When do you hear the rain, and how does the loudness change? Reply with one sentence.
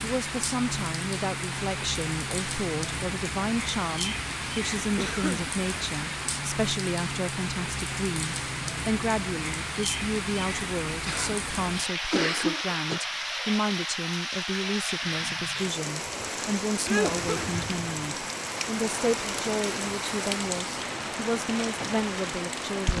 The rain can be heard from 0.0 to 22.9 s, at a steady volume.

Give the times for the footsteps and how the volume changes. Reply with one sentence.
You can't hear the footsteps here.